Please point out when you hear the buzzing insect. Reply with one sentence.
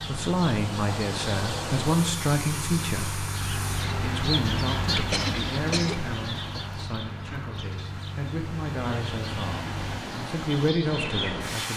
You can't hear the buzzing insect here.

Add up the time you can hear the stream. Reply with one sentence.
You can hear the stream for 12 seconds altogether.